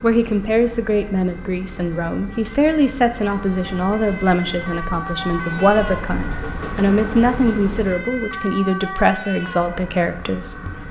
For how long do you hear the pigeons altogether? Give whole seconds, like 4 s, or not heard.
not heard.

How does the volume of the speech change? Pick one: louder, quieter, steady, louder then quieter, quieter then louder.
steady.